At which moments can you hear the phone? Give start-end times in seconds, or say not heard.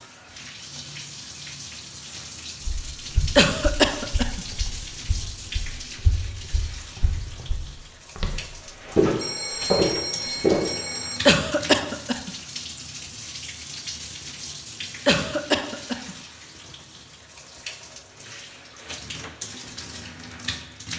9.2-11.2.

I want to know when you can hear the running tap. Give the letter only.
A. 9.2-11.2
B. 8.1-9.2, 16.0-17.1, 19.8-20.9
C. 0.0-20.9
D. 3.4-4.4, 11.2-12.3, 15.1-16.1
C.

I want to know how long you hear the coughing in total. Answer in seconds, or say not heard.
3 s.